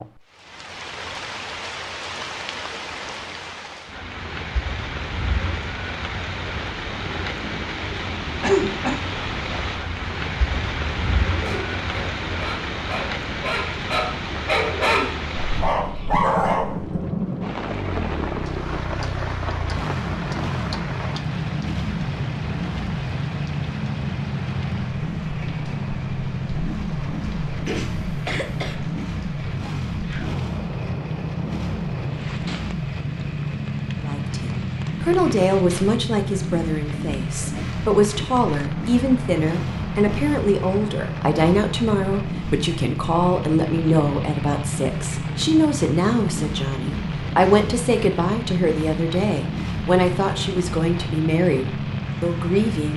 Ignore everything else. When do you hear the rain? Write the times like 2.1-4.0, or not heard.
0.0-52.9.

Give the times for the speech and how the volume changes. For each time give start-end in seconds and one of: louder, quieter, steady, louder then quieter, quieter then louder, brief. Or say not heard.
34.0-52.9 steady.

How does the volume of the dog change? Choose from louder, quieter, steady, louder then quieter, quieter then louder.
louder.